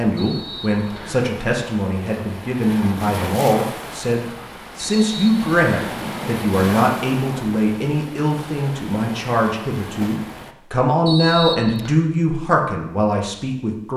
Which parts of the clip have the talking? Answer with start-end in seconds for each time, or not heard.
0.0-13.9.